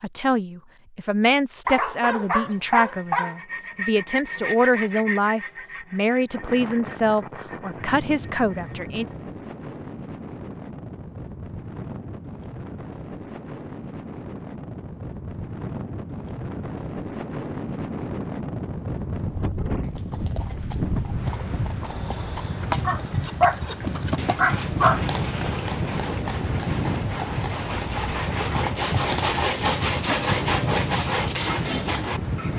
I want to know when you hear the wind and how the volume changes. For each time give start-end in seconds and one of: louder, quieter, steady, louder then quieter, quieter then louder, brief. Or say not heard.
6.3-32.5 louder.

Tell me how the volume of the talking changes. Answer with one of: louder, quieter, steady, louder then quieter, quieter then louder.
steady.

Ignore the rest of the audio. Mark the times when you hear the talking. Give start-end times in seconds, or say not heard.
0.0-9.1.